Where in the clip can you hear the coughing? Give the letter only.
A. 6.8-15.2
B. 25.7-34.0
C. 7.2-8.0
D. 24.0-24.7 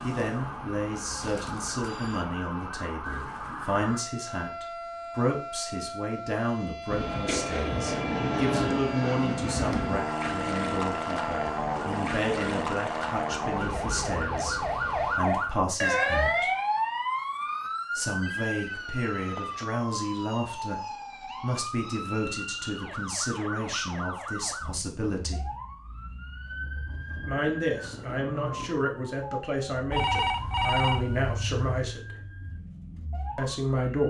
C.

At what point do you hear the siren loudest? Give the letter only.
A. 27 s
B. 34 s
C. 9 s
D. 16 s
D.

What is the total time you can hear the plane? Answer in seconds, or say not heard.
8 s.